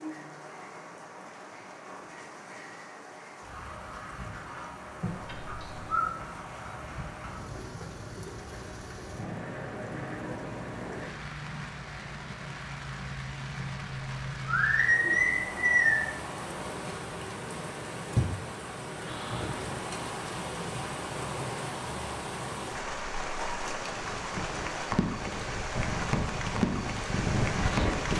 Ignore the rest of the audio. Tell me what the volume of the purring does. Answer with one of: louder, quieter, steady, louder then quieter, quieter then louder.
louder.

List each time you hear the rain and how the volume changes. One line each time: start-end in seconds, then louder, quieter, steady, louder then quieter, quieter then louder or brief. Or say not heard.
0.0-28.1 louder.